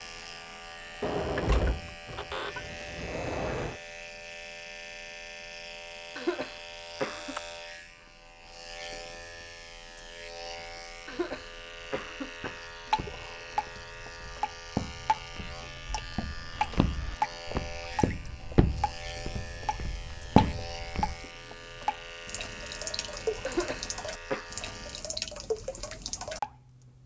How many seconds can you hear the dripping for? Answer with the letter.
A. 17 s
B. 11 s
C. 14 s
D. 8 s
C.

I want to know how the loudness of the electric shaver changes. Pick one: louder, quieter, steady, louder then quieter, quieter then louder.
steady.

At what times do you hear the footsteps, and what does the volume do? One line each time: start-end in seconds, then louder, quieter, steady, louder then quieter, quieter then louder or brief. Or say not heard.
11.1-21.2 louder.